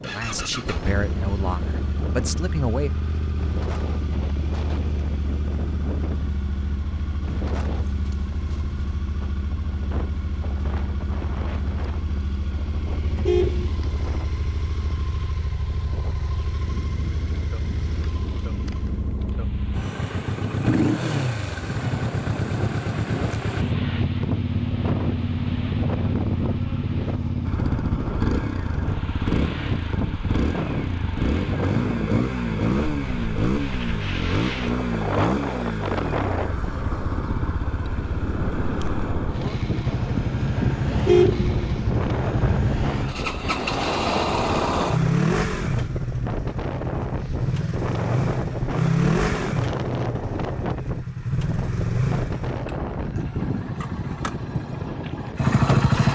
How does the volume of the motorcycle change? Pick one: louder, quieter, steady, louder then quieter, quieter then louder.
louder.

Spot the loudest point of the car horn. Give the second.
41 s.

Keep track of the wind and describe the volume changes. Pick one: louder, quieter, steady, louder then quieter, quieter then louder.
louder.